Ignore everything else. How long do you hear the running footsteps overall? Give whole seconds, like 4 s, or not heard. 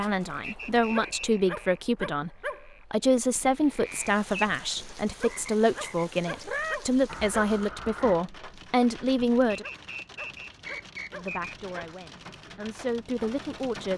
not heard.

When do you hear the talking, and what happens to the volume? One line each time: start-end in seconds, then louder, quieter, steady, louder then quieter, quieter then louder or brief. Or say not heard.
0.0-9.7 steady
11.1-13.9 brief.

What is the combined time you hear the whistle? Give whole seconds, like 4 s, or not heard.
3 s.